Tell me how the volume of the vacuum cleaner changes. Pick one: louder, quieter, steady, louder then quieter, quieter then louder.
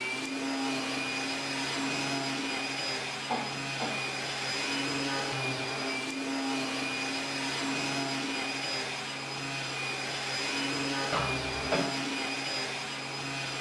steady.